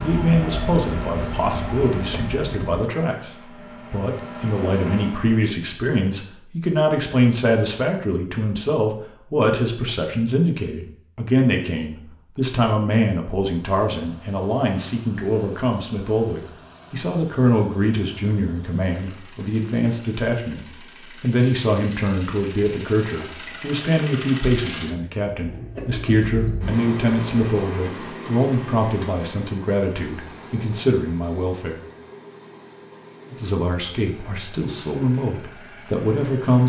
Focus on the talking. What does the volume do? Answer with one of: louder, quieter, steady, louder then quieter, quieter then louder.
steady.